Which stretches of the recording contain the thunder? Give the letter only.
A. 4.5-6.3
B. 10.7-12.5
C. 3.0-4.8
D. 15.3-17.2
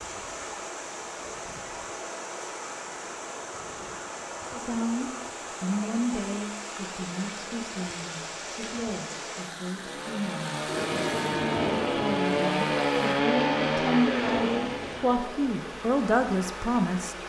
B.